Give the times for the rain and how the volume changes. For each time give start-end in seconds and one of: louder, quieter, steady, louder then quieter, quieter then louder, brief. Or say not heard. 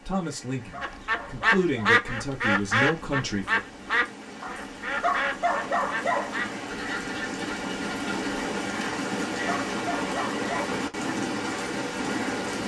0.0-12.6 louder.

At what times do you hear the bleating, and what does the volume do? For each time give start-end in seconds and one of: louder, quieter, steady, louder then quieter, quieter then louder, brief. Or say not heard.
not heard.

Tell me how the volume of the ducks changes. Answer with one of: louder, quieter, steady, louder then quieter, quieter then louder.
quieter.